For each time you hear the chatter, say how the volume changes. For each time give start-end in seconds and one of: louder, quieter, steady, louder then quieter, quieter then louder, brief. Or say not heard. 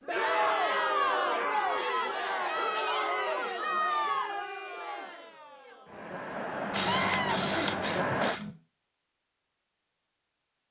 0.0-8.4 quieter then louder.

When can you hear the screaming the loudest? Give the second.
7 s.